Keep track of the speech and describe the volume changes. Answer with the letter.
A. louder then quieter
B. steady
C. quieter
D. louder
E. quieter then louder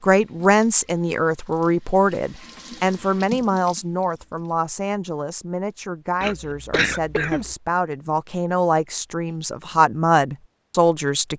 E.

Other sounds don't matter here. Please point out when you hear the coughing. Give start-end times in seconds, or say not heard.
6.2-7.5.